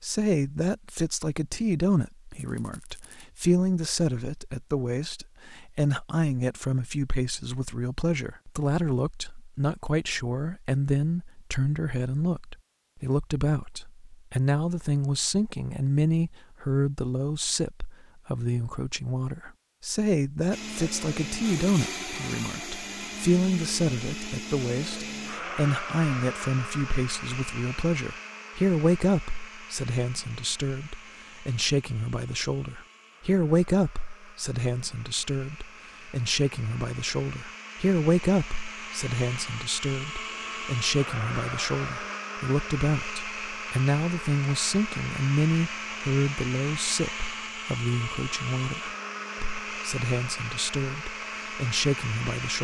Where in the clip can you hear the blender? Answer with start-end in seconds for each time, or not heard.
20.5-52.5.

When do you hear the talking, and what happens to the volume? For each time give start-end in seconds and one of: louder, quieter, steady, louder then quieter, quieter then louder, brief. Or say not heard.
0.0-52.5 steady.